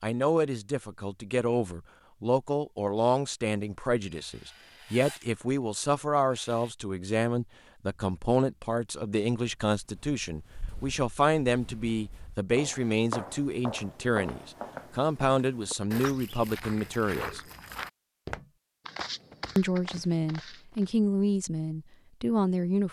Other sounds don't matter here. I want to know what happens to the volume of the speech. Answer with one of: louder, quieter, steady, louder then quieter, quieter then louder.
steady.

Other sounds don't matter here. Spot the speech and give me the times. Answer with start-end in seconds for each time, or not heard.
0.0-17.4, 19.6-22.8.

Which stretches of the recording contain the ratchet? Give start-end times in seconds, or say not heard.
not heard.